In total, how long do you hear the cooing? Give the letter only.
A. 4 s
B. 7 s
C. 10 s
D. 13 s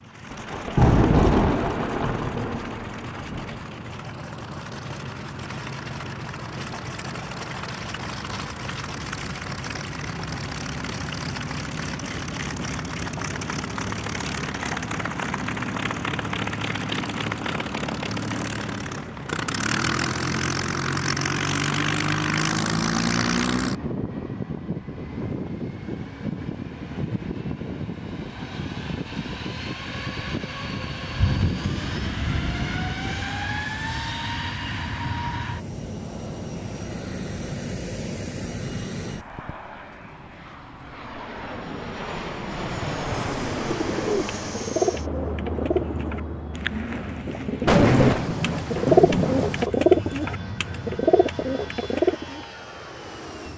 C.